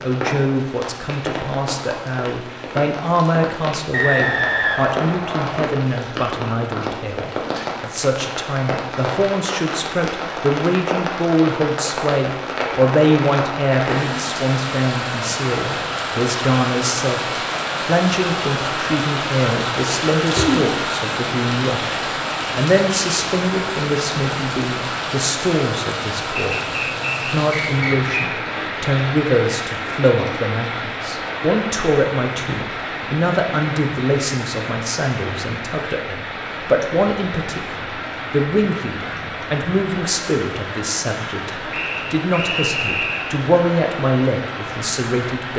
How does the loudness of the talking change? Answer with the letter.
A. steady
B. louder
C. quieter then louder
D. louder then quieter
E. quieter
A.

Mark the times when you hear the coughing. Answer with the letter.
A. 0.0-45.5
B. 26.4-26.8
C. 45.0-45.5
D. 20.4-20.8
D.